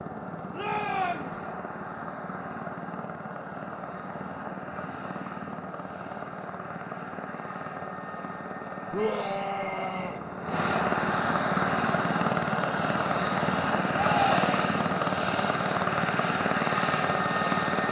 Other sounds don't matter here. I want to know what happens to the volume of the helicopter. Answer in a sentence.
The volume of the helicopter goes up.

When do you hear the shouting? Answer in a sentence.
The shouting can be heard from 0.5 to 1.4 s, from 8.9 to 10.2 s and from 13.9 to 14.8 s.